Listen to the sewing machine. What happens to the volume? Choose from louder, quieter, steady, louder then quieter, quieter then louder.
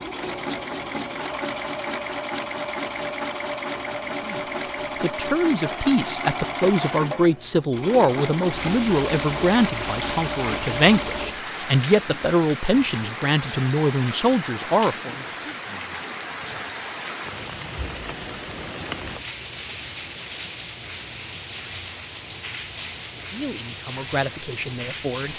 steady.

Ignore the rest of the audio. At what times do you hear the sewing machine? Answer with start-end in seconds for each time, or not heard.
0.0-11.4.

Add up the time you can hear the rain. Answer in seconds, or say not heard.
17 s.